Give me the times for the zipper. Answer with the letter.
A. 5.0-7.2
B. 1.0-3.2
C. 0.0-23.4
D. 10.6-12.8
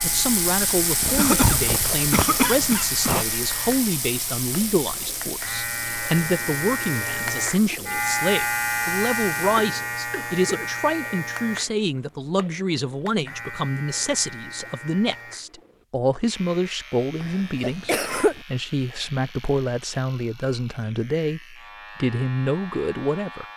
B.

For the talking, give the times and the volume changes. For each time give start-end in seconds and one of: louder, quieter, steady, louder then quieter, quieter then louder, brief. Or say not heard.
0.0-23.4 steady.